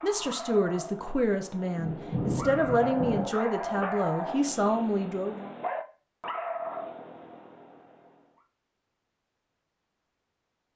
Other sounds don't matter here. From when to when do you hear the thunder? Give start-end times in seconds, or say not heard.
1.8-3.2.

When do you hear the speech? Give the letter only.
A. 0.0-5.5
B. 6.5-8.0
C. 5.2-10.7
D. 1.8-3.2
A.